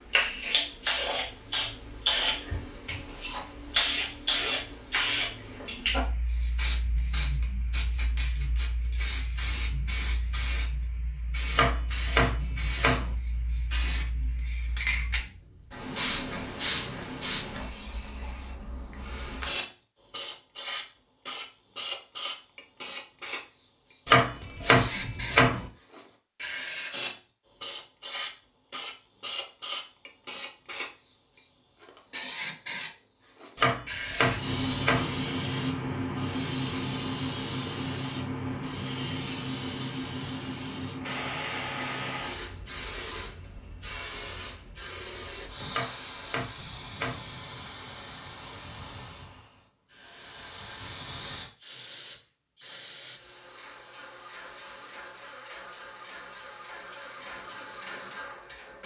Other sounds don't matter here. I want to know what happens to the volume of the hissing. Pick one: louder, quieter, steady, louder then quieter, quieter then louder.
quieter.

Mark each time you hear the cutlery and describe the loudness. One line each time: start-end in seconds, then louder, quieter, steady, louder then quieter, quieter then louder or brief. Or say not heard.
not heard.